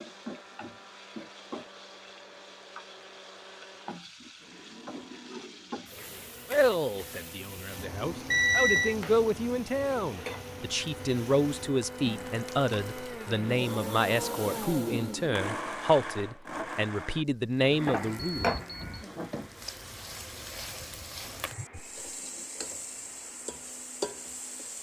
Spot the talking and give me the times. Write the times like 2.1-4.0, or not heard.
6.5-18.6.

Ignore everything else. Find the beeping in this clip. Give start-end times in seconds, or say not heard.
8.2-8.9, 18.4-19.1.